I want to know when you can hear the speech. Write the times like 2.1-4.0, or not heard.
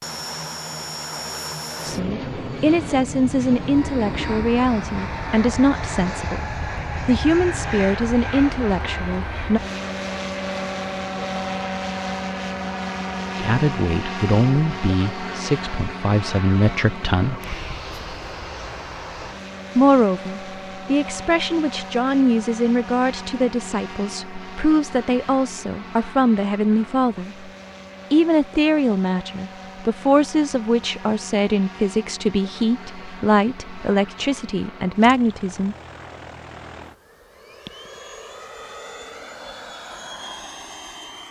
1.8-6.5, 7.0-9.6, 13.4-17.4, 19.8-27.5, 28.1-35.8.